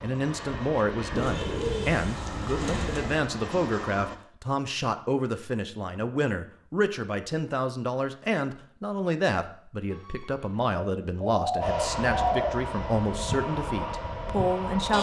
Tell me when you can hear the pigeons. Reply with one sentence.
The pigeons can be heard from 1.1 to 3.1 s and from 9.9 to 12.6 s.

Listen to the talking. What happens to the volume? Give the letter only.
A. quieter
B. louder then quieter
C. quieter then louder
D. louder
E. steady
E.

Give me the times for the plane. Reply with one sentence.
The plane can be heard from 0.0 to 4.2 s and from 11.6 to 14.9 s.